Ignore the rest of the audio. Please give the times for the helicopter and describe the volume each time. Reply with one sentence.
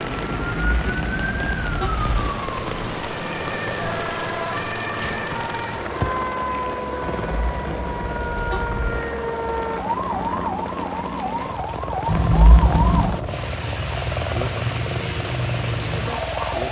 The helicopter can be heard from 0.0 to 16.6 s, at a steady volume.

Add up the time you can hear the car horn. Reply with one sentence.
You can hear the car horn for 5 seconds altogether.